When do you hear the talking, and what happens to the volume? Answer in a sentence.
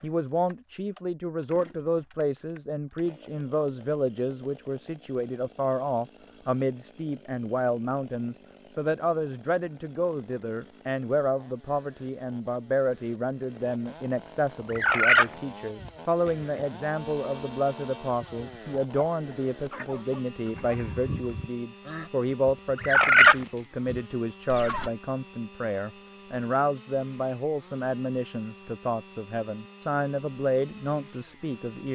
You can hear the talking from 0.0 to 31.8 s, at a steady volume.